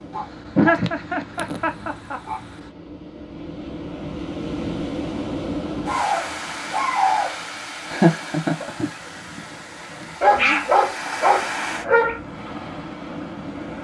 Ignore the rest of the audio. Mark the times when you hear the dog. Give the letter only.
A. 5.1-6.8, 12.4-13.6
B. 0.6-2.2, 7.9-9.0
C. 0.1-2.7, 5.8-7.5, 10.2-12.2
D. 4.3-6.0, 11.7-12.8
C.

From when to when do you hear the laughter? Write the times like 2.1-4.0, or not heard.
0.6-2.2, 7.9-9.0.